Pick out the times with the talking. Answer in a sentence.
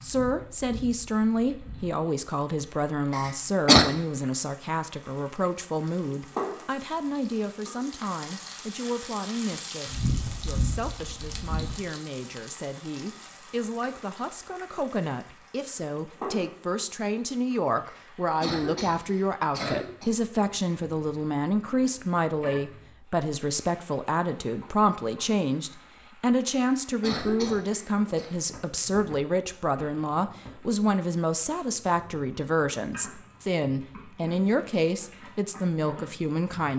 You can hear the talking from 0.0 to 36.7 s.